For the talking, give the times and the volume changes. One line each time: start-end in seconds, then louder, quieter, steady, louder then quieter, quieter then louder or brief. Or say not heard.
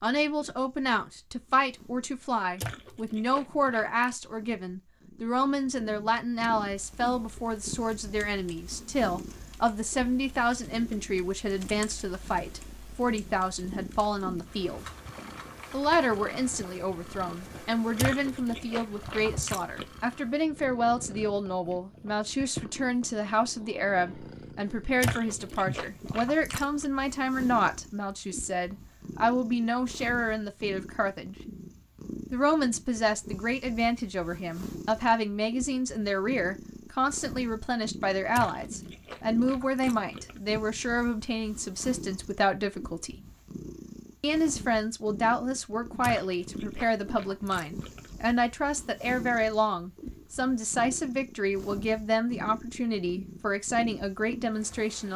0.0-14.8 steady
15.7-31.4 steady
32.3-43.1 steady
44.2-55.1 steady.